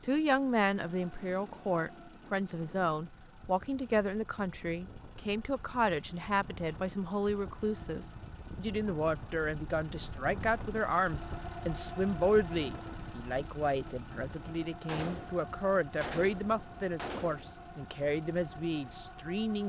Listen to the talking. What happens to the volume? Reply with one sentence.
The volume of the talking stays about the same.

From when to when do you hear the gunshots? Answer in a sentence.
The gunshots can be heard from 14.8 to 17.6 s.